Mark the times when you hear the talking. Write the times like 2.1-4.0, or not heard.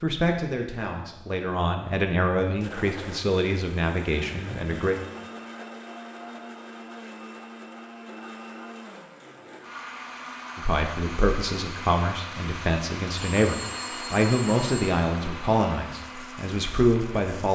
0.0-5.0, 10.6-17.5.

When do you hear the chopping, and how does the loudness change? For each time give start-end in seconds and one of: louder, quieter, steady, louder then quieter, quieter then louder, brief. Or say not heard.
not heard.